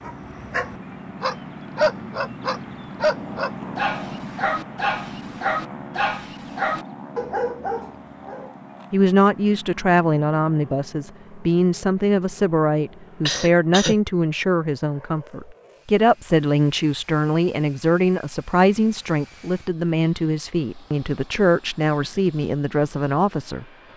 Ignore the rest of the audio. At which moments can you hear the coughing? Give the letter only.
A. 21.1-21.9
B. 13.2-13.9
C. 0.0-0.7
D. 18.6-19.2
B.